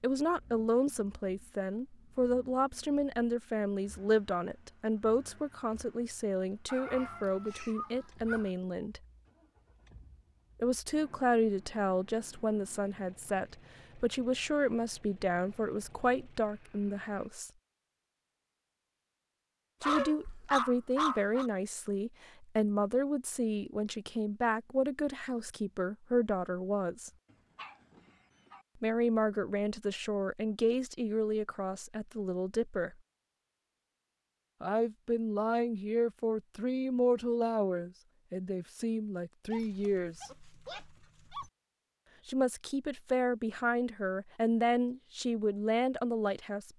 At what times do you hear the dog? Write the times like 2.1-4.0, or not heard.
6.7-8.5, 19.8-21.5, 27.3-28.6, 39.5-41.5.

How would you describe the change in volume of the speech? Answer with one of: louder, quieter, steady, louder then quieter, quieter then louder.
steady.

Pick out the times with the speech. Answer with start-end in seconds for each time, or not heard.
0.0-9.0, 10.6-17.5, 19.8-27.1, 28.8-33.0, 34.6-40.3, 42.2-46.7.